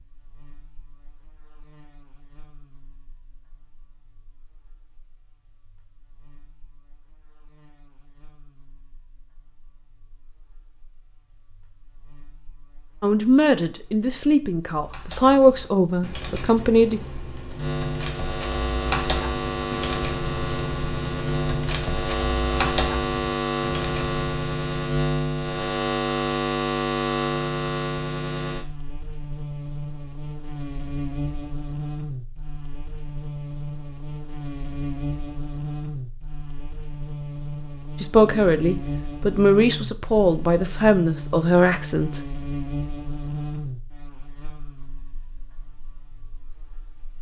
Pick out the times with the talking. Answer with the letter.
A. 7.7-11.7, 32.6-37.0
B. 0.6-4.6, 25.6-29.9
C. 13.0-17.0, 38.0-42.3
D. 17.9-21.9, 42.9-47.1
C.